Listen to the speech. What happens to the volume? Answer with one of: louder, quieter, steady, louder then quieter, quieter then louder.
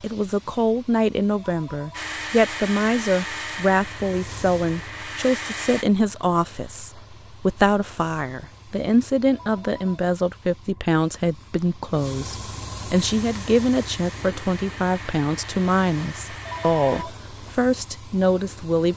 steady.